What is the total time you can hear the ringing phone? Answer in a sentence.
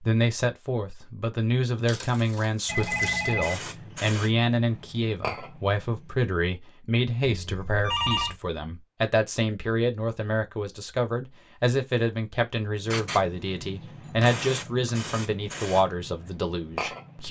You can hear the ringing phone for 3 seconds altogether.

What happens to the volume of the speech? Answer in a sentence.
The volume of the speech stays about the same.